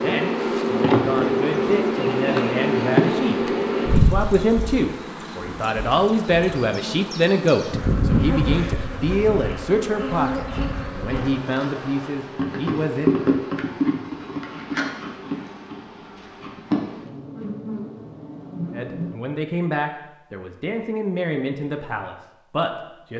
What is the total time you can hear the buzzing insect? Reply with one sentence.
You can hear the buzzing insect for 19 seconds altogether.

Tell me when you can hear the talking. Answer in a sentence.
You can hear the talking from 0.0 to 13.1 s and from 18.7 to 23.1 s.